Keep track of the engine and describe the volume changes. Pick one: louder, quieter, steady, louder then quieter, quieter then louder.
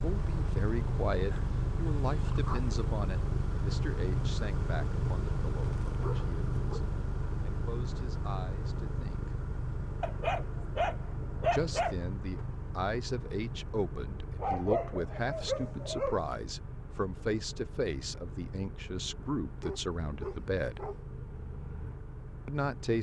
quieter.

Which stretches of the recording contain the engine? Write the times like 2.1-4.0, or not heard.
0.0-22.9.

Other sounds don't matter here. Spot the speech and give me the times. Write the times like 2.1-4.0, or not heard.
0.0-9.3, 11.5-20.9, 22.4-22.9.